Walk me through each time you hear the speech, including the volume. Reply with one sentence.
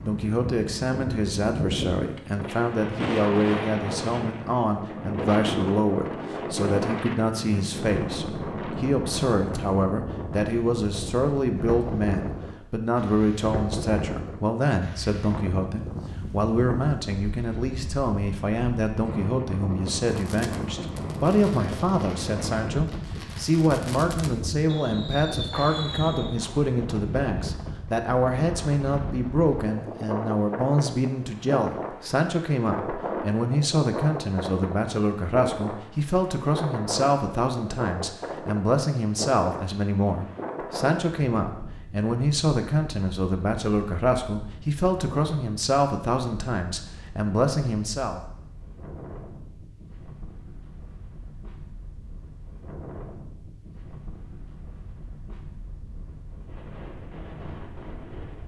You can hear the speech from 0.0 to 48.2 s, at a steady volume.